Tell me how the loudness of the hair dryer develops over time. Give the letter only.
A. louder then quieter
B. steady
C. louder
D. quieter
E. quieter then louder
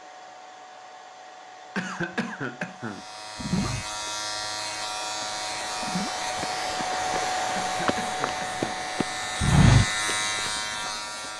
A.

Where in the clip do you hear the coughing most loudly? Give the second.
2 s.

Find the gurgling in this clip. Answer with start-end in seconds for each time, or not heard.
3.4-3.9, 5.8-6.2.